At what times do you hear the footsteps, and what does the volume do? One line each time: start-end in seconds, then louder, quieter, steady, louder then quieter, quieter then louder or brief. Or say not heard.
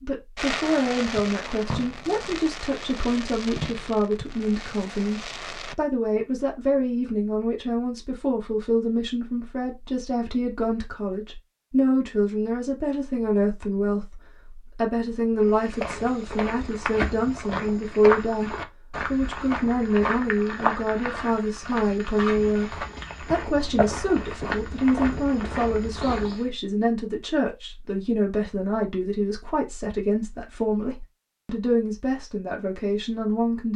15.4-26.5 steady.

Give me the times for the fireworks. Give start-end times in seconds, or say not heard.
0.3-5.8.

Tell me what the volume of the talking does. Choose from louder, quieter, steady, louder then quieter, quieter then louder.
steady.